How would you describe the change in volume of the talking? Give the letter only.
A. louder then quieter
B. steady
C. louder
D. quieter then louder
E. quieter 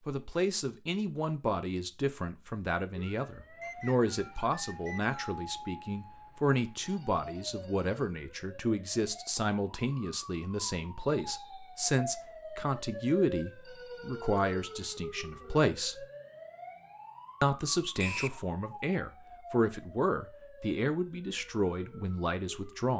B.